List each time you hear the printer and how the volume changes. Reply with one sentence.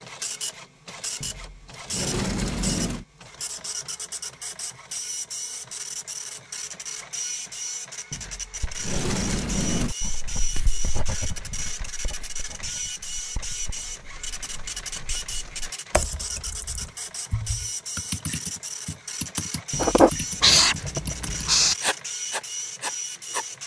The printer can be heard from 0.0 to 23.6 s, at a steady volume.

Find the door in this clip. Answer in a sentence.
The door can be heard from 1.2 to 3.0 s, from 8.1 to 9.9 s and from 19.7 to 20.6 s.